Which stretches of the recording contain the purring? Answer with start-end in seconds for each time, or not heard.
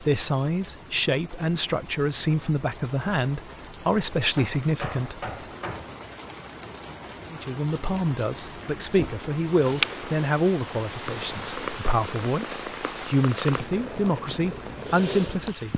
9.4-15.7.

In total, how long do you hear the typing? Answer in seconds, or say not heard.
not heard.